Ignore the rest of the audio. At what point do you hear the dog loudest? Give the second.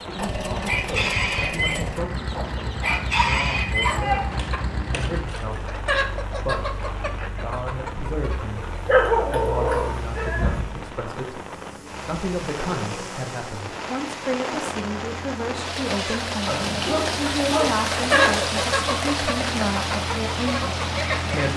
9 s.